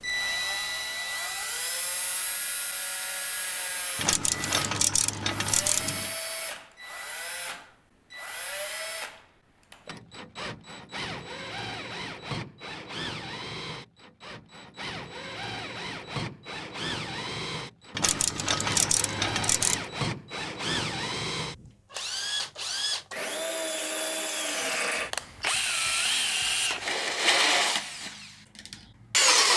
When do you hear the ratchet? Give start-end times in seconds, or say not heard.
4.0-6.2, 17.9-19.9.